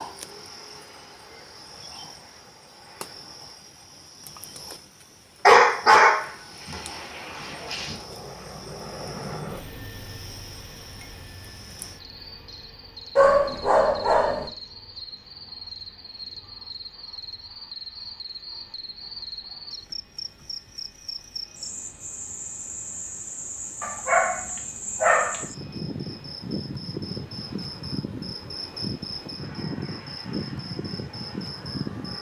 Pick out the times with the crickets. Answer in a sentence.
You can hear the crickets from 0.0 to 32.1 s.